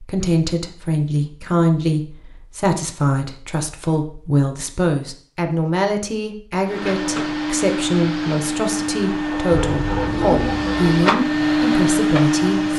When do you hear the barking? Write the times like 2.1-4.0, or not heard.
9.3-11.1.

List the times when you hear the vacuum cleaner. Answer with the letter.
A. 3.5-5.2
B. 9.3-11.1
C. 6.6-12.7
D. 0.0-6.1
C.